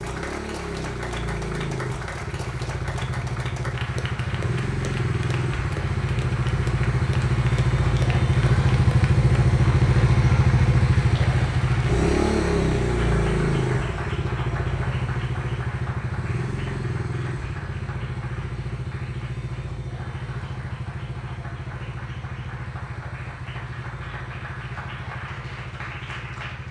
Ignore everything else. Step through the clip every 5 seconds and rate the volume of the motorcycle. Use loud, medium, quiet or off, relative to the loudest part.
medium, loud, loud, medium, quiet, quiet.